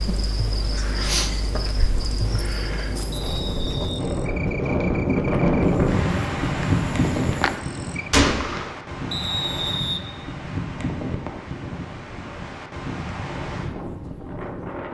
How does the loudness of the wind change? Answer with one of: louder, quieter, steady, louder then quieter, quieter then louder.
louder then quieter.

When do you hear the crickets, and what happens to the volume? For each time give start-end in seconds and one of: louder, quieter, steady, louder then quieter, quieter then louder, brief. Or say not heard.
0.0-8.1 quieter then louder.